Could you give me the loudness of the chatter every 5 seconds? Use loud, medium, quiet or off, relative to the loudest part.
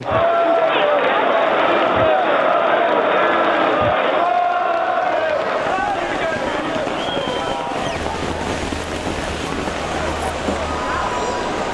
loud, medium, medium.